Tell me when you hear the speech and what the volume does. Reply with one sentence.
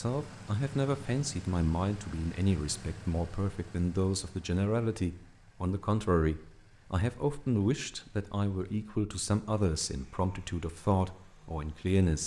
You can hear the speech from 0.0 to 12.2 s, at a steady volume.